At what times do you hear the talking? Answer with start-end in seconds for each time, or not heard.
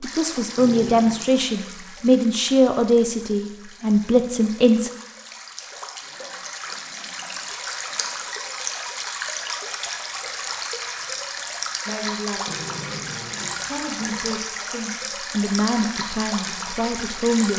0.0-4.9, 11.8-12.6, 13.7-17.5.